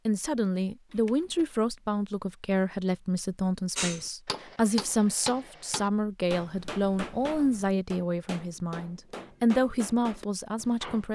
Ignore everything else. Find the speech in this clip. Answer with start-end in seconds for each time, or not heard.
0.1-11.1.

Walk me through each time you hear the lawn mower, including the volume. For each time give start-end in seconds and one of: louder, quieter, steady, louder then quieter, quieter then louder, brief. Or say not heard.
not heard.